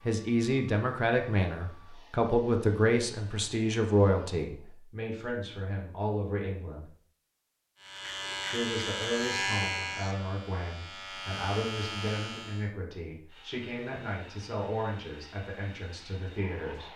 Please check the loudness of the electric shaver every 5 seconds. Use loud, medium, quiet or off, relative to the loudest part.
off, loud, medium, off.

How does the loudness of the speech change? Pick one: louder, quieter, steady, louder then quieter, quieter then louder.
quieter.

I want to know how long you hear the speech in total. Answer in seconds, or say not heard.
15 s.